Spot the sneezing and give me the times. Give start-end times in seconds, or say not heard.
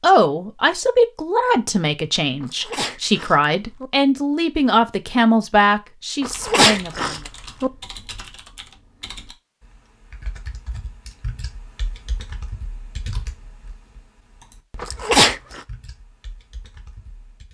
2.4-3.9, 6.2-7.7, 14.8-15.6.